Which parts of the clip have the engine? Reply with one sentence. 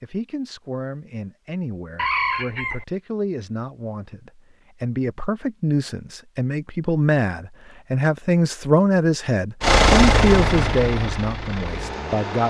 The engine can be heard from 9.6 to 12.4 s.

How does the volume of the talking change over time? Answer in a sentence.
The loudness of the talking goes up.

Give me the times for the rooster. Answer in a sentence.
The rooster can be heard from 1.9 to 2.9 s.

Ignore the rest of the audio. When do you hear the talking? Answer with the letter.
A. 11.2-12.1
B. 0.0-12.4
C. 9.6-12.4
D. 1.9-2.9
B.